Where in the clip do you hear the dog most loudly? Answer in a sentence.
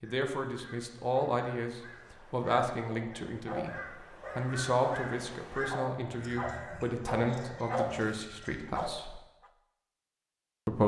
The volume of the dog peaks at 8 seconds.